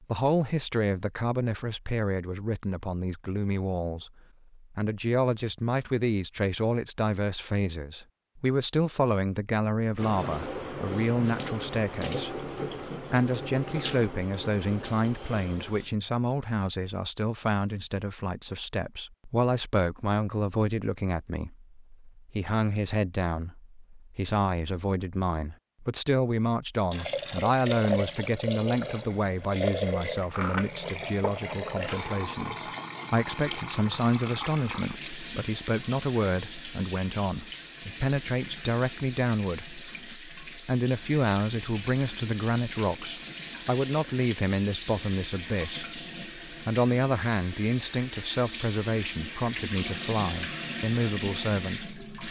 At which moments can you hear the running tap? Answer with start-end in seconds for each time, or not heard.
9.9-15.9, 26.9-52.2.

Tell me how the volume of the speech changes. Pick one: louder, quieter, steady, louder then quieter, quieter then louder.
steady.